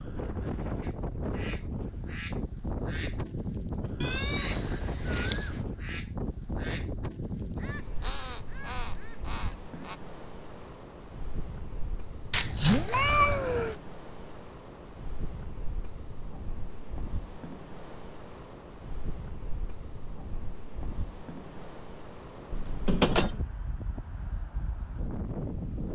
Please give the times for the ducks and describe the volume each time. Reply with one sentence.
The ducks can be heard from 0.8 to 10.0 s, at a steady volume.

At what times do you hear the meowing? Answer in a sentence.
You can hear the meowing from 4.0 to 5.7 s, from 12.3 to 13.8 s and from 22.5 to 23.4 s.